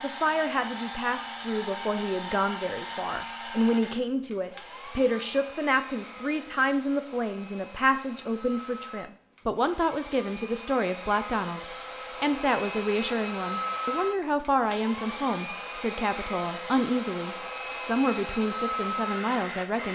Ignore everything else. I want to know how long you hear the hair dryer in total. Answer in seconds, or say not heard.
20 s.